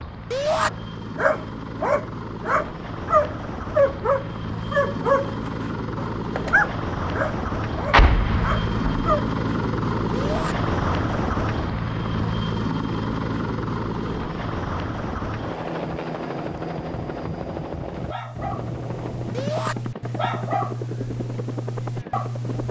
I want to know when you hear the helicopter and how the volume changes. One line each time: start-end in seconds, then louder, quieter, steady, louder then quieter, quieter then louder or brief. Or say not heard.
0.0-22.6 louder then quieter.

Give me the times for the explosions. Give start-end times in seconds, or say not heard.
7.9-9.1.